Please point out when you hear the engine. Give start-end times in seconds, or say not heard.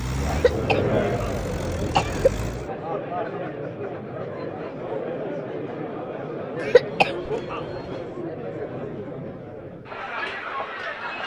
0.0-2.7.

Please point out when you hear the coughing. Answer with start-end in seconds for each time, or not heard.
0.3-2.3, 6.6-8.0.